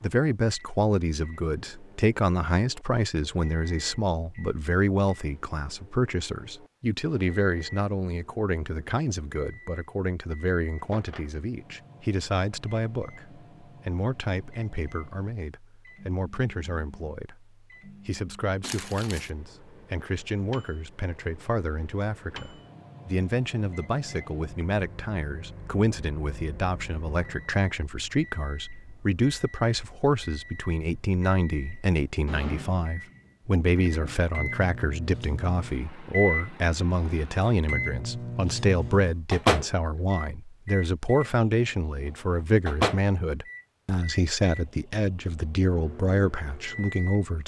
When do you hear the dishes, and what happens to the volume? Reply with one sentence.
You can't hear the dishes here.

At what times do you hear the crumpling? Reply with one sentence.
The crumpling can be heard from 18.6 to 19.3 s.